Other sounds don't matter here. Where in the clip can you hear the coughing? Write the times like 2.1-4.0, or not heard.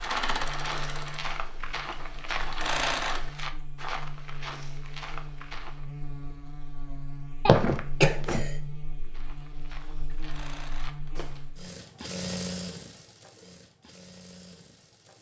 7.5-8.5.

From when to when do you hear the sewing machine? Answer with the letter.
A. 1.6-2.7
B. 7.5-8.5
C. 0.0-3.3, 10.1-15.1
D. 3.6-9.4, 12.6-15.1
C.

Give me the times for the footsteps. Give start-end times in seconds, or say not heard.
0.0-5.8, 9.0-11.6.